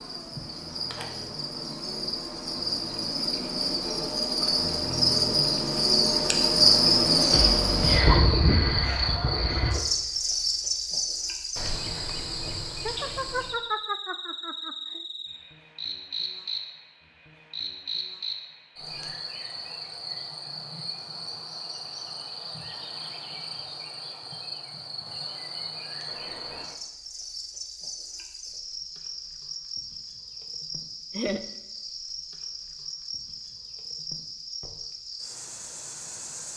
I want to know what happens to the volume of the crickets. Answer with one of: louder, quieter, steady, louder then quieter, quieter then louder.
quieter.